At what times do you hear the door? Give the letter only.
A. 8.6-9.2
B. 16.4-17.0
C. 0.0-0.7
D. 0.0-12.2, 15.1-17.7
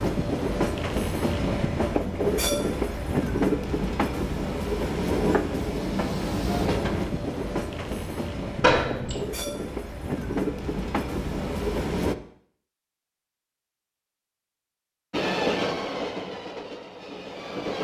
A.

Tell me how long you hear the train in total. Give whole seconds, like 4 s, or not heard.
15 s.